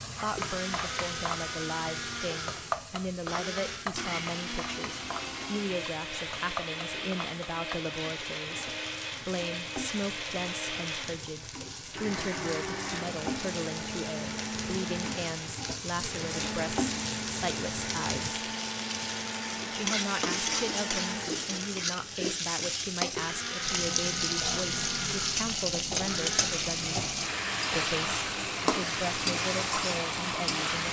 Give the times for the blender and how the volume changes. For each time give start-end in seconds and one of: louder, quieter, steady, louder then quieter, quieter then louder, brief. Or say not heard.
0.3-30.8 steady.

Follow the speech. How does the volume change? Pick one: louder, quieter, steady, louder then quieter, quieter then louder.
steady.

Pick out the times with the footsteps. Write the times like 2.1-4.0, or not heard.
not heard.